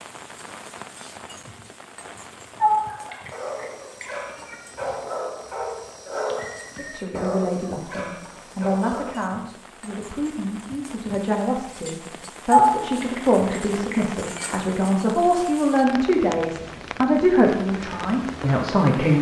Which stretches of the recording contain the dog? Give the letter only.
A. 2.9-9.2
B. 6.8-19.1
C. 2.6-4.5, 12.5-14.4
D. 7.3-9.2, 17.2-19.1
A.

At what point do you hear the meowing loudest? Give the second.
13 s.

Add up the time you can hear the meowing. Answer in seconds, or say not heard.
4 s.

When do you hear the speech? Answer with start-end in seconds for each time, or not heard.
6.8-19.1.